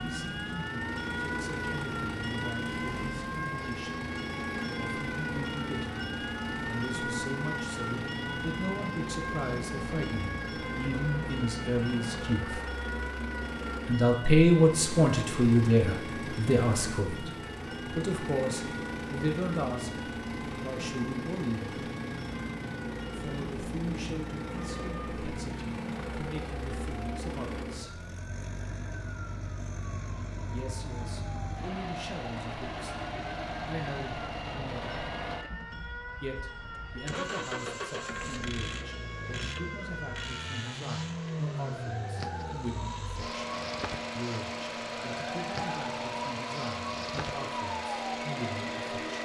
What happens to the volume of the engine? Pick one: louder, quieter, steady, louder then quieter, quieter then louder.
steady.